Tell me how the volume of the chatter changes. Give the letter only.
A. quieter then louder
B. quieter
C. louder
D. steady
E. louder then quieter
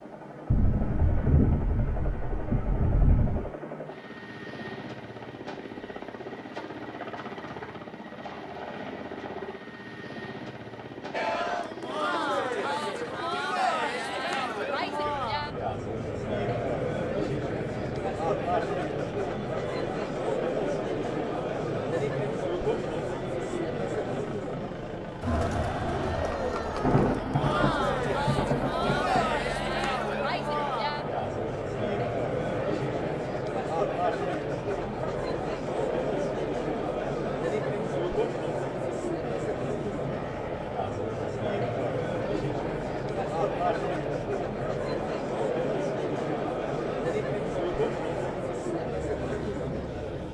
D.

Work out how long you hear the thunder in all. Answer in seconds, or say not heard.
6 s.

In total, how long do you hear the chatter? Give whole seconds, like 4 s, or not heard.
39 s.